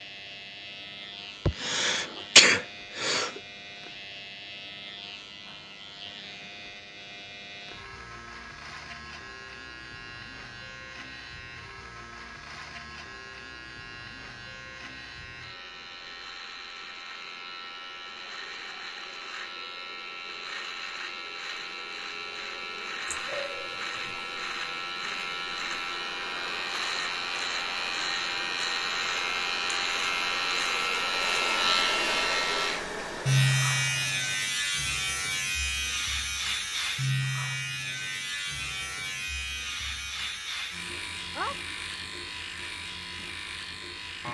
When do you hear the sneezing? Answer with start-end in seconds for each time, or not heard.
1.4-3.3, 23.1-24.2, 41.3-41.7.